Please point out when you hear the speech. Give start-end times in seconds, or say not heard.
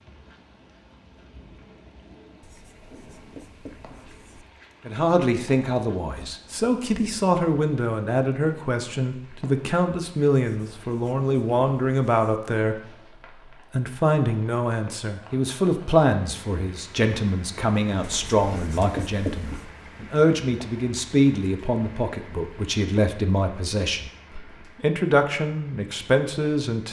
4.8-12.8, 13.5-26.8.